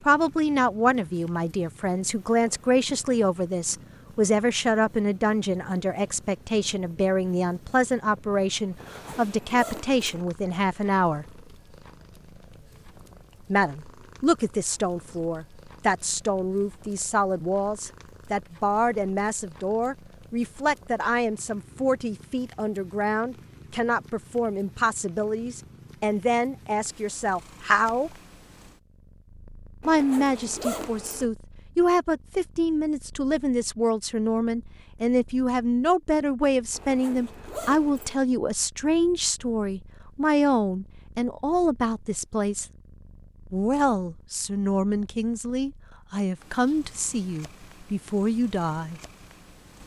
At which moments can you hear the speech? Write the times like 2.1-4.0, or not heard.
0.1-11.3, 13.5-28.1, 29.9-42.6, 43.5-49.0.